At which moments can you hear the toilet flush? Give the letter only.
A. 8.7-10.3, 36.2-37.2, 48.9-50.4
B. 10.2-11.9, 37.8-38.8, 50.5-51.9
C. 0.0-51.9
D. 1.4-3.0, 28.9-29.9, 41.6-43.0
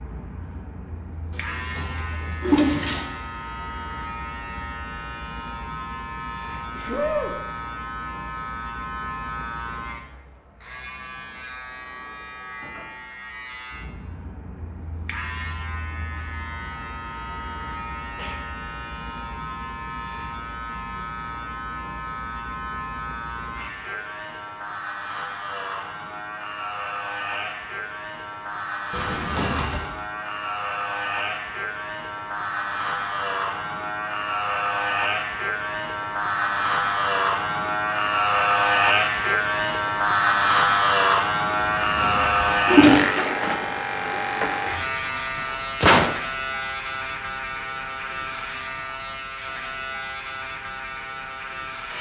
D.